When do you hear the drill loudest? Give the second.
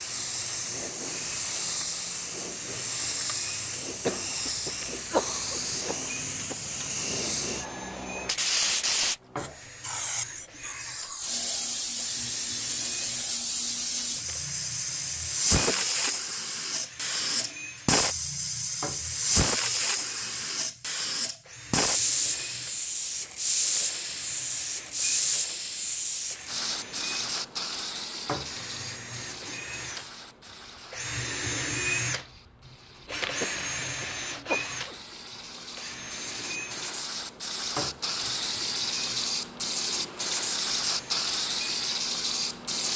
32 s.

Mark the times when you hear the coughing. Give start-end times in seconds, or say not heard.
4.0-6.5, 15.7-16.4, 33.4-35.0.